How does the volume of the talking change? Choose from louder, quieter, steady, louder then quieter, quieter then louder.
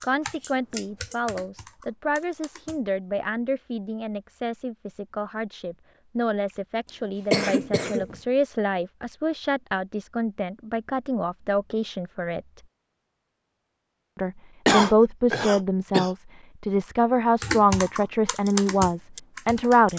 louder.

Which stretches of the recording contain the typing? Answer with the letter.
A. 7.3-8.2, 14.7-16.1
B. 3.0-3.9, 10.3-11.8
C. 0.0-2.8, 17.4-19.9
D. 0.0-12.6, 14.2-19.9
C.